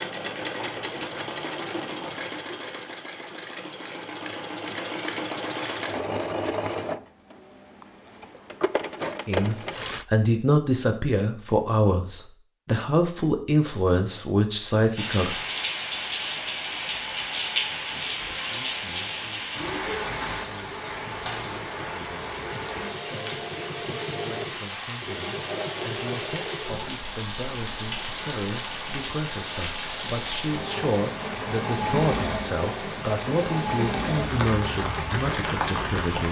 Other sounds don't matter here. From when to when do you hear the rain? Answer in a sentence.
The rain can be heard from 14.9 to 36.2 s.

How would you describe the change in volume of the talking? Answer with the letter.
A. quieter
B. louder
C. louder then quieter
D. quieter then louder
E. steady
D.